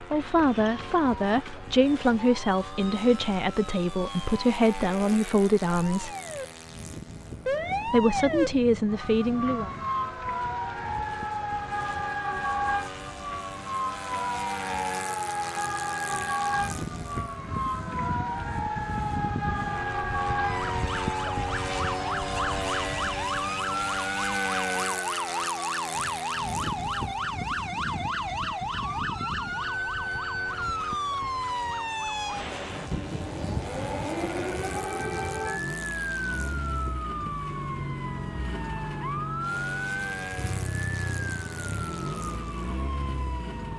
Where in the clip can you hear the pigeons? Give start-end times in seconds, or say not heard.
not heard.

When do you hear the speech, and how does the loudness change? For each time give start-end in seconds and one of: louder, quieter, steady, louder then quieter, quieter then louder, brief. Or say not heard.
0.0-6.1 steady
7.8-9.7 brief.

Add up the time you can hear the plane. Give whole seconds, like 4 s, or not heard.
44 s.